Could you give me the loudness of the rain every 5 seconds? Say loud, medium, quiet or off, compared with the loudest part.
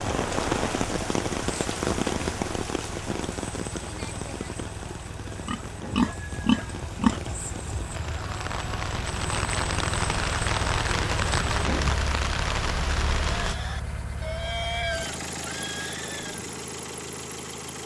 loud, medium, loud, off.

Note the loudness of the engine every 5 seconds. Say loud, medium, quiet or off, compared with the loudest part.
medium, loud, loud, loud.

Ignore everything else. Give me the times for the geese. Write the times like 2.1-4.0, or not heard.
not heard.